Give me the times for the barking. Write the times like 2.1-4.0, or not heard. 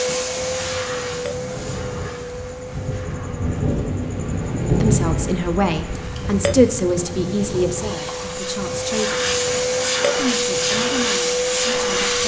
not heard.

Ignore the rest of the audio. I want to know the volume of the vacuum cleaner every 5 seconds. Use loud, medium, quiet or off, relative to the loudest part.
medium, medium, loud.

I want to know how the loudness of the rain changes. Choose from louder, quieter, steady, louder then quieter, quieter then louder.
louder then quieter.